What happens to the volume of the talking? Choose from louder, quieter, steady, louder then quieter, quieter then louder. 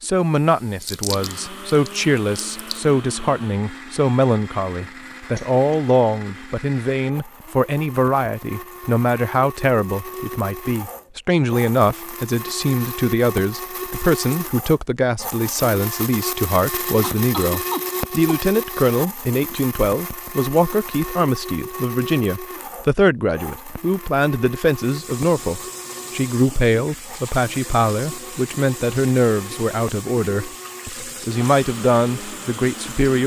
steady.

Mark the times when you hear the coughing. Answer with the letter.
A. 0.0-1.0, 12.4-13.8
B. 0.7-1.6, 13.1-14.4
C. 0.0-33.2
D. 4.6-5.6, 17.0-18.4
D.